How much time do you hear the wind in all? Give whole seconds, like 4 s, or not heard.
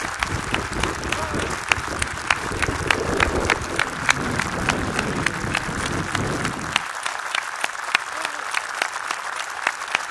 7 s.